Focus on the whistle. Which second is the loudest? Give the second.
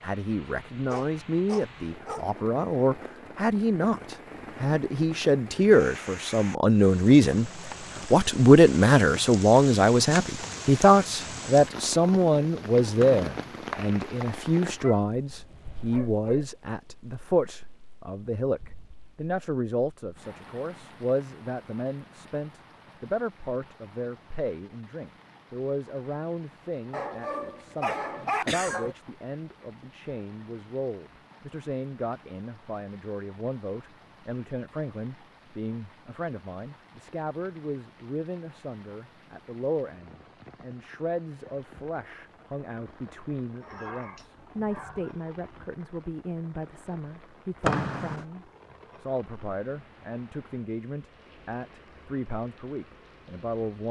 48 s.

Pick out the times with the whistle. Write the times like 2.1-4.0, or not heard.
13.0-14.4, 47.6-48.2.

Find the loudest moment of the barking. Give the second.
28 s.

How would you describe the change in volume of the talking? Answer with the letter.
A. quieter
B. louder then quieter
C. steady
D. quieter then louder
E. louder
A.